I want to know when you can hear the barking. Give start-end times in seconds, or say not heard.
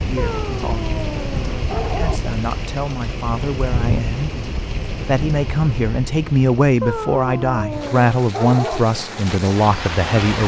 0.1-2.2, 6.8-8.8.